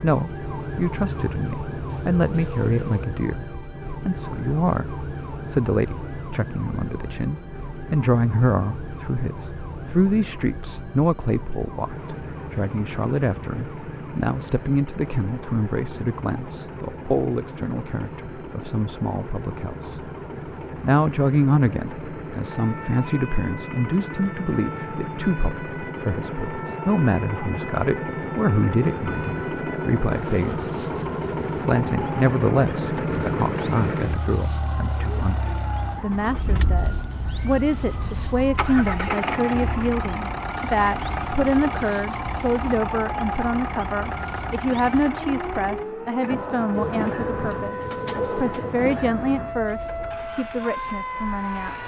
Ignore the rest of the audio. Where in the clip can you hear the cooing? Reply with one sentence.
You can hear the cooing from 46.7 to 48.8 s.